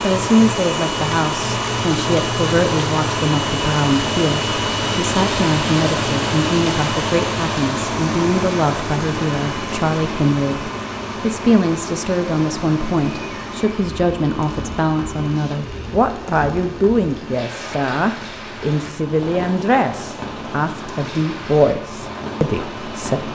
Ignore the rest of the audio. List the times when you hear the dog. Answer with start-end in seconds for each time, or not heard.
not heard.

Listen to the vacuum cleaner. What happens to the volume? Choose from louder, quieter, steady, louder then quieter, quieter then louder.
quieter.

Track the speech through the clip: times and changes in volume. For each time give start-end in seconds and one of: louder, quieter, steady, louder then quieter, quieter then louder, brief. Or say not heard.
0.0-23.3 steady.